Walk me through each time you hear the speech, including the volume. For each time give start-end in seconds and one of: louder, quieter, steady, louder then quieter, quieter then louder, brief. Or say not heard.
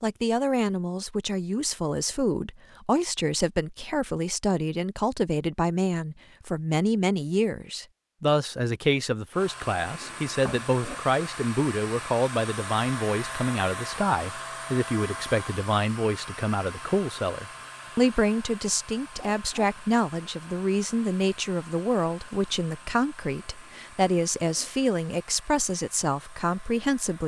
0.0-27.2 steady.